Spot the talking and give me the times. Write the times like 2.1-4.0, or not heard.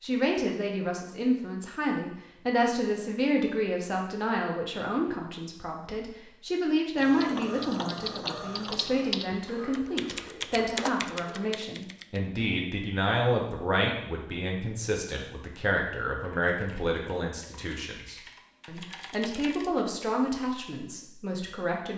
0.0-21.9.